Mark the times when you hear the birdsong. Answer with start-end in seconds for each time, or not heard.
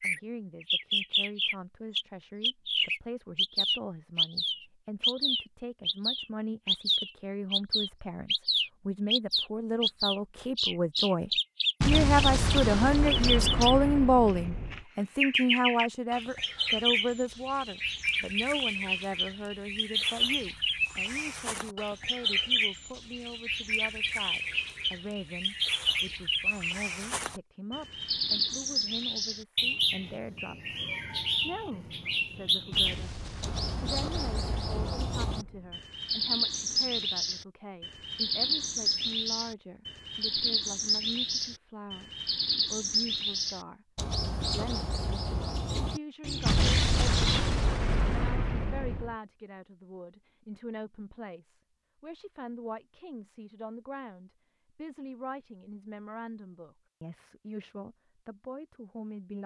0.0-47.6.